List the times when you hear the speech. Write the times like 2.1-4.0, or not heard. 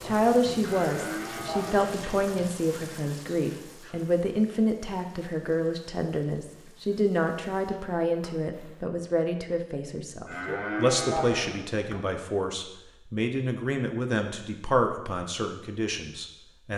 0.0-16.7.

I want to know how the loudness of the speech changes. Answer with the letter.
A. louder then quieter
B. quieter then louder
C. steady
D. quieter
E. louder
C.